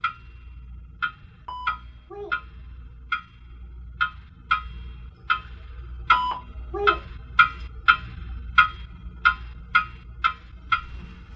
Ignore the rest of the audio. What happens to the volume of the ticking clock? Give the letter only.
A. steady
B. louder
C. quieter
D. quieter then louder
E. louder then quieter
B.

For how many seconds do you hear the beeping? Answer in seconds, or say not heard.
2 s.